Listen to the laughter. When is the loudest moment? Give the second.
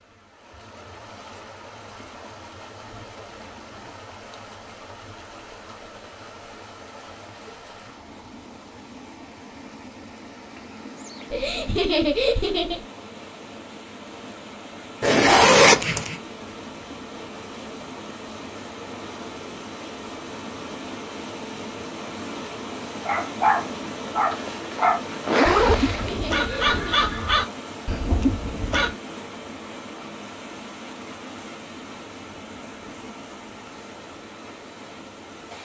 12 s.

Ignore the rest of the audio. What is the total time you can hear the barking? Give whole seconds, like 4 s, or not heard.
6 s.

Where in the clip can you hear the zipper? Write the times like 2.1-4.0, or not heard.
15.0-16.1, 24.3-26.1.